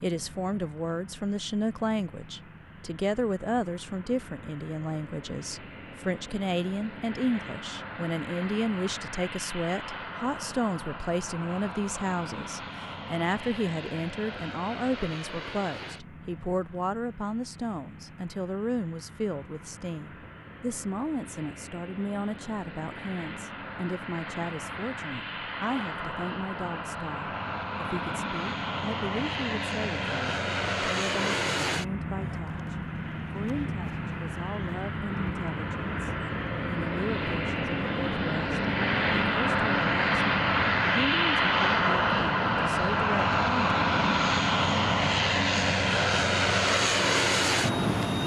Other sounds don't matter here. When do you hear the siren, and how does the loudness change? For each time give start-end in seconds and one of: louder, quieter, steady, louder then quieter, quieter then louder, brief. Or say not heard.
not heard.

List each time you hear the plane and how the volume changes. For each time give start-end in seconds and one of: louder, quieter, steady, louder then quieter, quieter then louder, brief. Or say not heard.
0.0-48.2 louder.